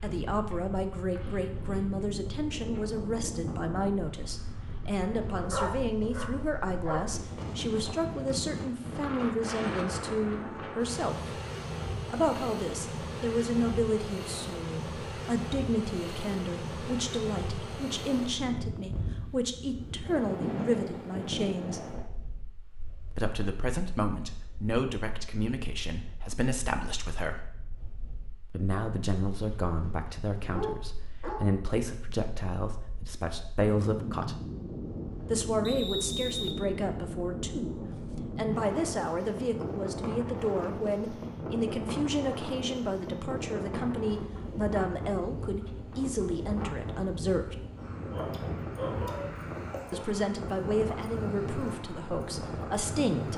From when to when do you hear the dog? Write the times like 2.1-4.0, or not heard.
5.4-7.0, 29.4-29.9, 30.5-31.5, 48.1-49.3.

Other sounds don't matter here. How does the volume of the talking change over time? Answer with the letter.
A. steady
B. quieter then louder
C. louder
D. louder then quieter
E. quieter
A.